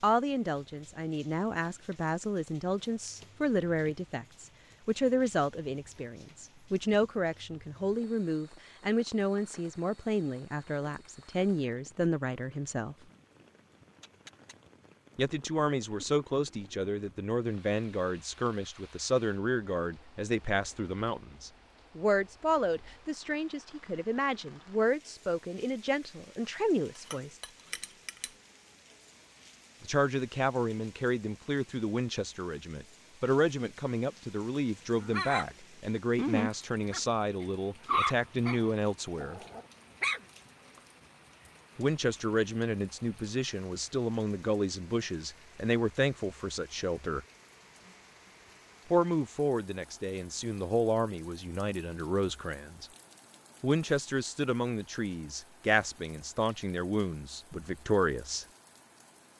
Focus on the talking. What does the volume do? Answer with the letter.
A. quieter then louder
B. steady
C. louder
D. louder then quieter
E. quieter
B.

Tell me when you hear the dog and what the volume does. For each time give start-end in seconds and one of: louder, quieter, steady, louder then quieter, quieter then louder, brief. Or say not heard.
35.0-35.5 brief
36.1-40.4 louder then quieter.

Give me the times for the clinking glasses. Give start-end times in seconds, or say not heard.
26.9-28.4.